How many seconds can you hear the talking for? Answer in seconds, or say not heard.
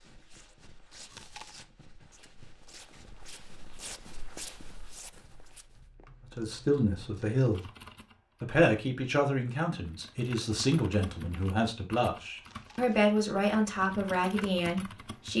8 s.